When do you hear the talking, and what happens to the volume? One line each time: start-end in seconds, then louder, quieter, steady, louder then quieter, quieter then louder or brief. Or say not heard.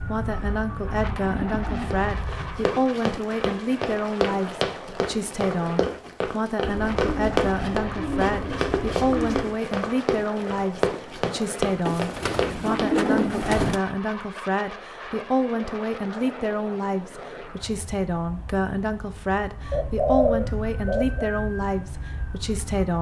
0.0-22.9 steady.